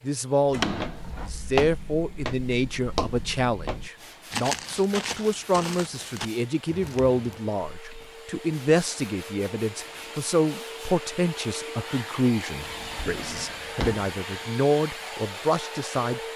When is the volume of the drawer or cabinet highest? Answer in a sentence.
The volume of the drawer or cabinet peaks at 1 second.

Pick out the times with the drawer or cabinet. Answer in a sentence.
You can hear the drawer or cabinet from 0.5 to 1.3 s and from 12.6 to 14.1 s.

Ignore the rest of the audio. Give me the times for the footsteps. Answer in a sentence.
The footsteps can be heard from 0.6 to 8.3 s.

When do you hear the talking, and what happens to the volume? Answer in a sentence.
You can hear the talking from 0.0 to 16.2 s, at a steady volume.